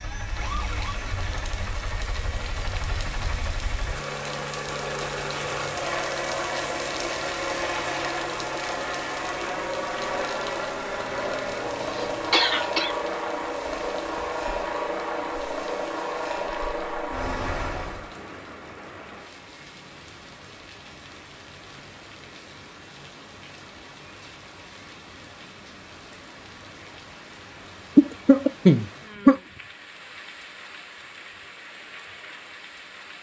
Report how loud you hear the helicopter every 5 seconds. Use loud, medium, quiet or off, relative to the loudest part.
medium, loud, loud, loud, off, off, off.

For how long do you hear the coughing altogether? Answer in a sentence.
The coughing can be heard for 3 seconds in total.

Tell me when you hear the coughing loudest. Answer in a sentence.
The volume of the coughing peaks at 29 seconds.